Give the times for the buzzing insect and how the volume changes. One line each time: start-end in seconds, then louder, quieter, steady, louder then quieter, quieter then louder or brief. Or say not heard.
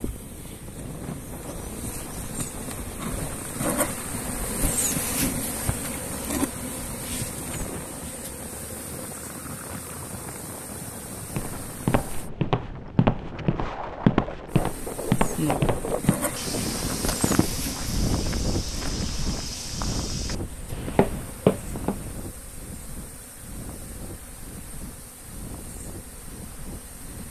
0.0-12.3 louder then quieter
14.4-27.2 quieter.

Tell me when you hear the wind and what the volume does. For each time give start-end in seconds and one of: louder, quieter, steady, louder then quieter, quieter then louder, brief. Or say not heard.
0.0-27.2 louder then quieter.